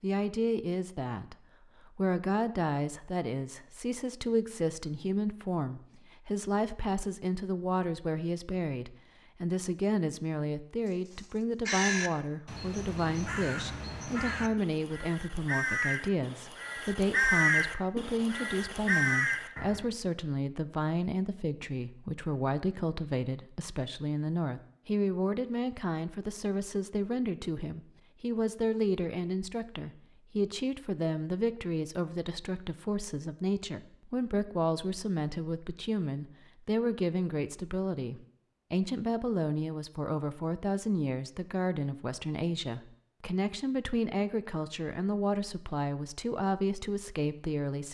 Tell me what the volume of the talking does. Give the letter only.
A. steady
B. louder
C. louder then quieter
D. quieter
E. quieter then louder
A.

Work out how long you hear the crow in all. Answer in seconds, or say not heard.
9 s.